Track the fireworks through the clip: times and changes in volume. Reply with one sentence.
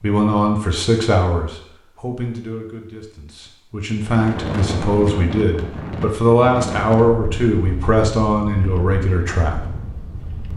You can't hear the fireworks here.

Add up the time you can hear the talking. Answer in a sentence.
The talking can be heard for 10 seconds in total.